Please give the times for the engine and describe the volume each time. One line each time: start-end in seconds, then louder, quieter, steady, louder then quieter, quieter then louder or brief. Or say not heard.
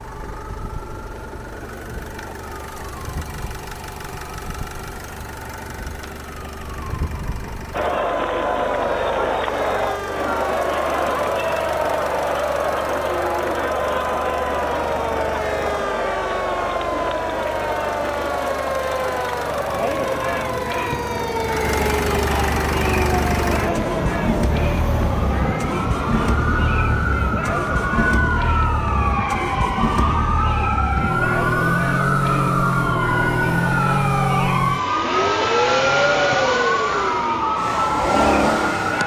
0.0-39.0 louder.